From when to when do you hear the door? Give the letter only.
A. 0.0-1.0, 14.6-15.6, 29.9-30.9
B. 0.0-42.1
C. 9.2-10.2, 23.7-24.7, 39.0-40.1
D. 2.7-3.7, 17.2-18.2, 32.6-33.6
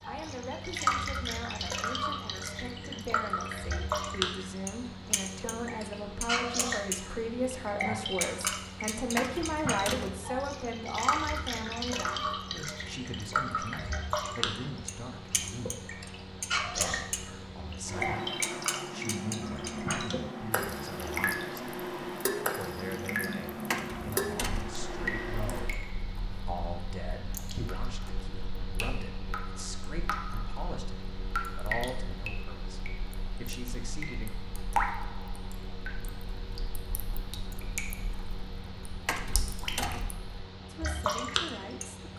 C.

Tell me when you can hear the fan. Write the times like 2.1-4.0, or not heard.
0.0-42.1.